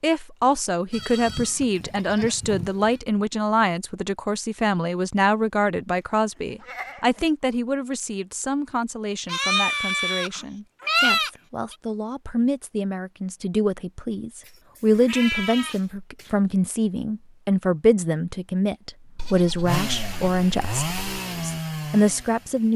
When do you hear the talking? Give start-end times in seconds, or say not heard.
0.0-22.7.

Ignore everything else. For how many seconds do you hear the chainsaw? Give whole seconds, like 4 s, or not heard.
3 s.